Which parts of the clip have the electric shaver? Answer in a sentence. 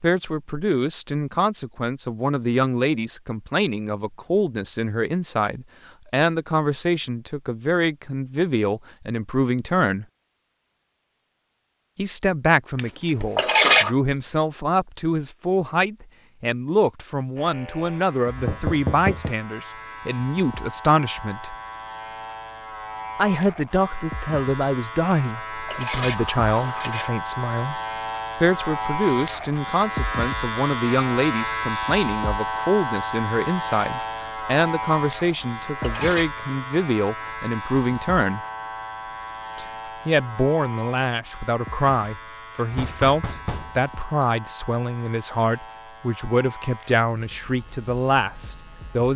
You can hear the electric shaver from 17.4 to 49.1 s.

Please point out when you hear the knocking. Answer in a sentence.
You can hear the knocking from 18.4 to 19.4 s and from 42.7 to 43.8 s.